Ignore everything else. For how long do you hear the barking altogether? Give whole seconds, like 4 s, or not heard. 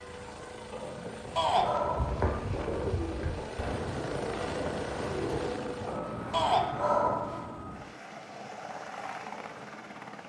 3 s.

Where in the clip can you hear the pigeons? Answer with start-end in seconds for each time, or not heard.
1.8-5.8.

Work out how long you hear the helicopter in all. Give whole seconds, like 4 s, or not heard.
10 s.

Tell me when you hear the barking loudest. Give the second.
7 s.